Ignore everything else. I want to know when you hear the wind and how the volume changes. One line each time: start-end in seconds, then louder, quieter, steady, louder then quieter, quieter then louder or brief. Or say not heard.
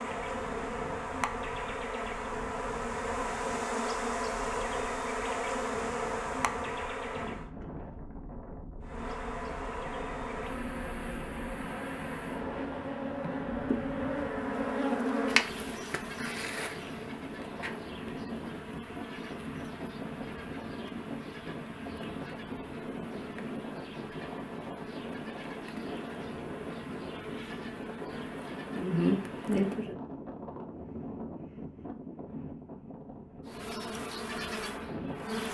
0.0-35.4 louder.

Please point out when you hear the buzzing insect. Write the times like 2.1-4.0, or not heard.
0.0-7.5, 8.8-29.9, 33.5-35.4.